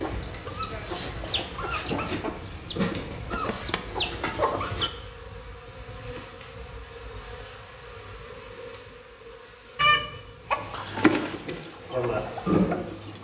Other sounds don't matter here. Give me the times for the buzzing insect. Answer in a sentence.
You can hear the buzzing insect from 0.0 to 13.1 s.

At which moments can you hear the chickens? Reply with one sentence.
The chickens can be heard from 0.0 to 4.9 s and from 9.8 to 13.1 s.